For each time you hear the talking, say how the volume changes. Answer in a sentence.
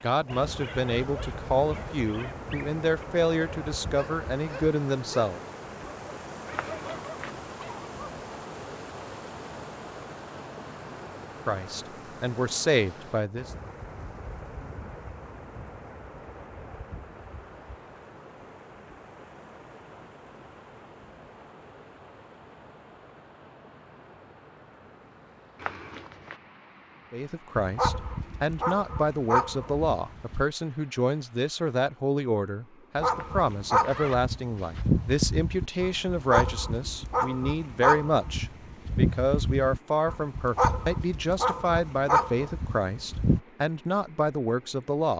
You can hear the talking from 0.0 to 5.4 s, at a steady volume; briefly from 11.4 to 13.5 s; and from 27.1 to 45.1 s, at a steady volume.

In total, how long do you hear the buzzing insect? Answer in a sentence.
You can't hear the buzzing insect here.